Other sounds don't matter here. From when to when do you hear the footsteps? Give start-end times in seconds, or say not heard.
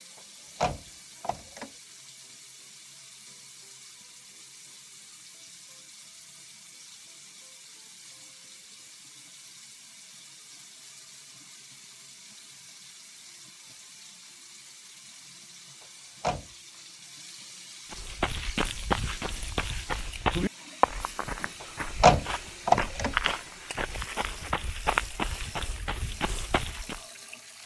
17.9-27.1.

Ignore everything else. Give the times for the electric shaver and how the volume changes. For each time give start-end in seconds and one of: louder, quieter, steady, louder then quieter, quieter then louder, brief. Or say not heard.
not heard.